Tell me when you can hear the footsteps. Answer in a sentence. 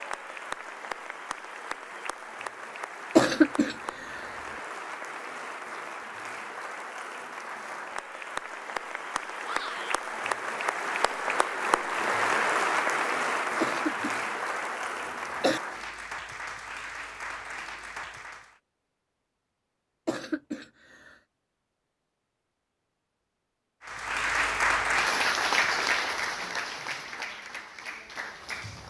You can't hear the footsteps here.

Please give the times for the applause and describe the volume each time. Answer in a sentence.
The applause can be heard from 0.0 to 18.6 s, getting louder then quieter; and from 23.9 to 28.8 s, getting quieter.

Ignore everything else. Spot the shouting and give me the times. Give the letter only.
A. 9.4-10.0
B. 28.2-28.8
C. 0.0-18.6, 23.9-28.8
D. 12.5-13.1
A.